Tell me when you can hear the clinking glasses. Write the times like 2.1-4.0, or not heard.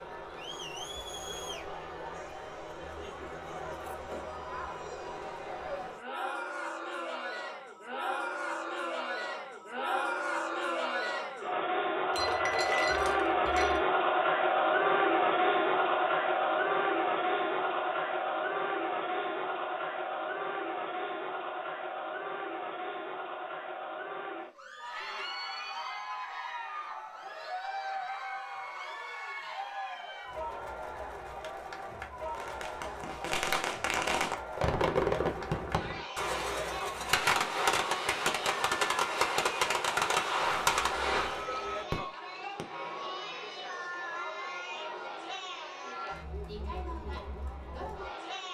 12.1-13.8.